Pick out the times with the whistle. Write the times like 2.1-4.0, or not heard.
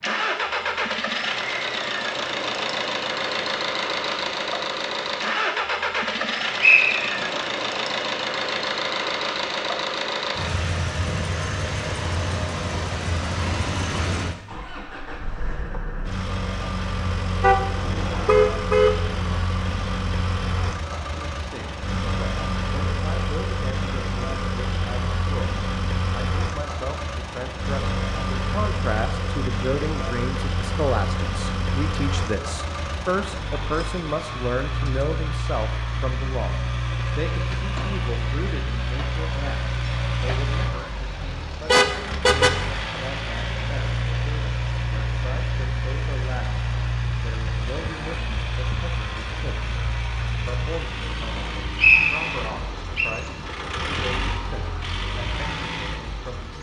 6.6-7.3, 51.8-53.1.